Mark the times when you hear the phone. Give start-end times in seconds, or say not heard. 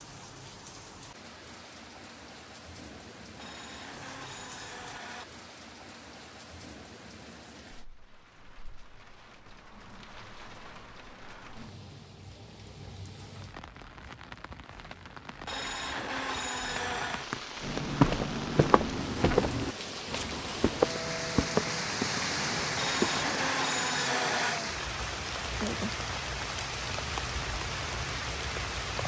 3.4-5.2, 15.4-17.3, 22.8-24.6.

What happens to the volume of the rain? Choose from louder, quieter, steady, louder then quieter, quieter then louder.
louder.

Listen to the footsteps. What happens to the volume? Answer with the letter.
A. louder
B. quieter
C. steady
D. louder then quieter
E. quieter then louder
B.